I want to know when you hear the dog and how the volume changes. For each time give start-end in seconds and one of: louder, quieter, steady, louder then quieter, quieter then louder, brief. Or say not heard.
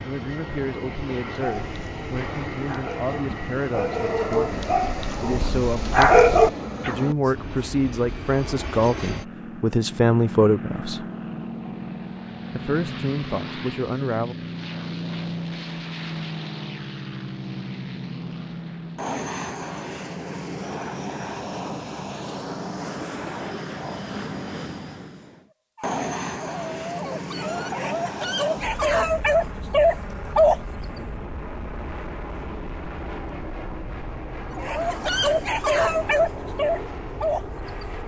1.3-7.0 louder
25.8-30.6 louder
34.5-37.4 brief.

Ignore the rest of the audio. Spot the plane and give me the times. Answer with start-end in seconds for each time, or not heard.
0.0-38.0.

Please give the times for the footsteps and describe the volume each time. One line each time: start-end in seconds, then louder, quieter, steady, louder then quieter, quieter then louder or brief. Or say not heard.
not heard.